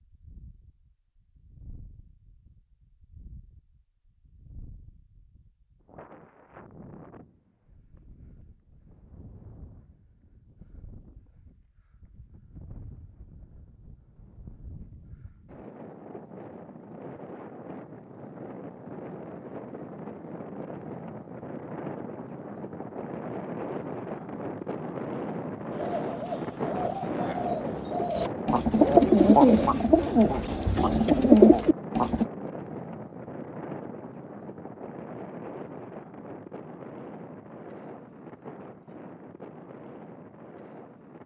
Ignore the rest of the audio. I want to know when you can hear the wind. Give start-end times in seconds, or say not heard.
0.0-41.2.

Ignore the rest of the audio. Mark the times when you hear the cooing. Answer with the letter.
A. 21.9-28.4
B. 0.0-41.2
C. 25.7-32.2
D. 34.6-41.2
C.